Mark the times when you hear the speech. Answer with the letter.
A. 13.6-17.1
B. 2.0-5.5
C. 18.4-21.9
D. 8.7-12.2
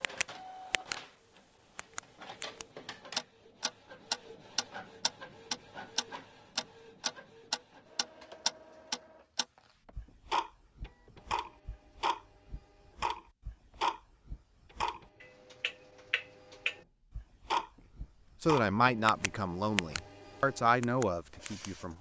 C.